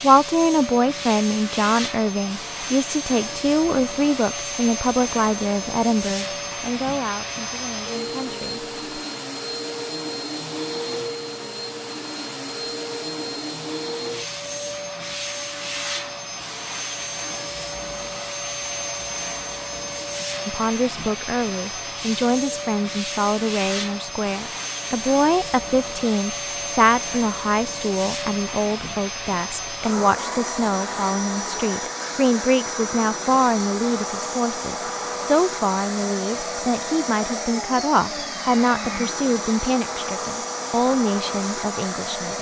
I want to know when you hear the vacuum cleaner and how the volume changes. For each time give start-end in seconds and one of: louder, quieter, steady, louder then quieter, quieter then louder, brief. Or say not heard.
0.0-42.3 steady.